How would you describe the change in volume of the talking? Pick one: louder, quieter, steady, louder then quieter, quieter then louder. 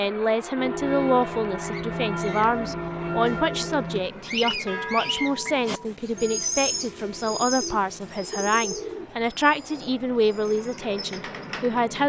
steady.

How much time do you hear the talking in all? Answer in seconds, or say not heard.
12 s.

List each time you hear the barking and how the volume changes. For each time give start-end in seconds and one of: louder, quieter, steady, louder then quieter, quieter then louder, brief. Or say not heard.
not heard.